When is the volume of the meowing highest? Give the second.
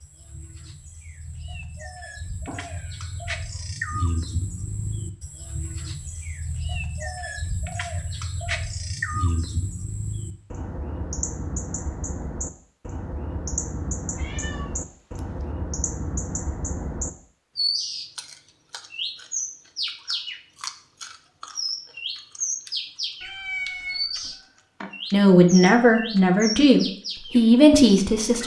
24 s.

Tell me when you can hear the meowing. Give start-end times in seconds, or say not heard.
2.5-3.1, 14.2-15.2, 23.2-24.4.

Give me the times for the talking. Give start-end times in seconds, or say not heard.
25.1-28.4.